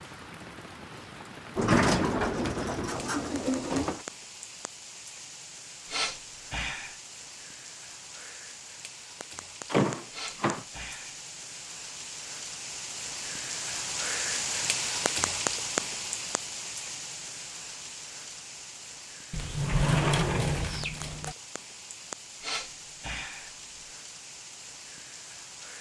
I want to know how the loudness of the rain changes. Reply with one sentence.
The loudness of the rain goes up, then down.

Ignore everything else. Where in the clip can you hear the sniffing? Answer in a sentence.
The sniffing can be heard from 5.8 to 7.0 s, from 10.1 to 11.2 s and from 22.4 to 23.5 s.